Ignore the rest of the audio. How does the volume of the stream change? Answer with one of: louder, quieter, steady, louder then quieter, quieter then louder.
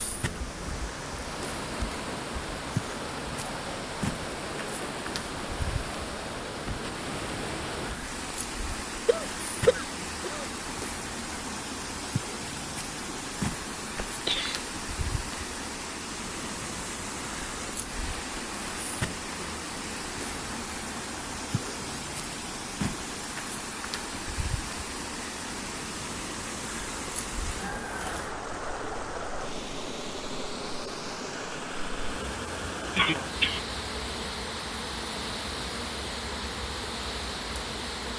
steady.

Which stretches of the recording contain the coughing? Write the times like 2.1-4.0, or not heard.
9.1-10.4, 14.1-14.7, 32.9-33.6.